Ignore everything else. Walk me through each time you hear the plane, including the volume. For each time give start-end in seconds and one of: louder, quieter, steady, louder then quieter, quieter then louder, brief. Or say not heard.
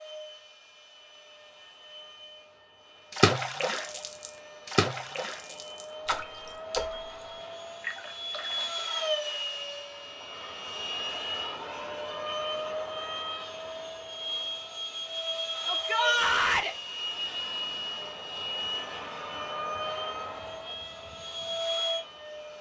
0.0-22.5 louder.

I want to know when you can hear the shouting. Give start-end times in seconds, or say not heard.
15.7-16.8.